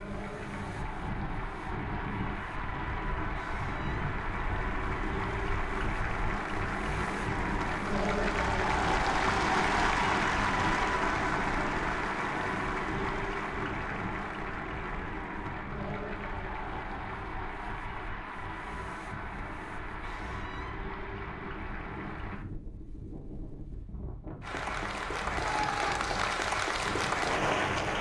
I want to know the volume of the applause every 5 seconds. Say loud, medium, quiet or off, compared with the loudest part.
medium, loud, loud, medium, medium, loud.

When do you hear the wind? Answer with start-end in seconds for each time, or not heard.
0.0-27.9.